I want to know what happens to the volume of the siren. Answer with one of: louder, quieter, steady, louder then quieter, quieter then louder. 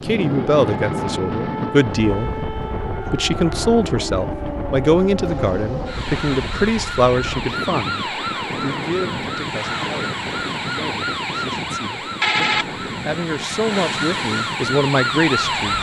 louder.